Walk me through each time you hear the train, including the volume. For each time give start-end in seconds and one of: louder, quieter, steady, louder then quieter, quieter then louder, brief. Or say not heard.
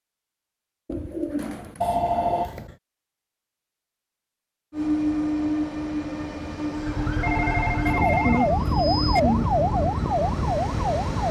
4.7-11.2 quieter.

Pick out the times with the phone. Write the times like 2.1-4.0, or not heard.
1.8-2.8, 7.2-9.2.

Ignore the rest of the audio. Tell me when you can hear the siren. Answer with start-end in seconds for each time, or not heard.
6.8-11.2.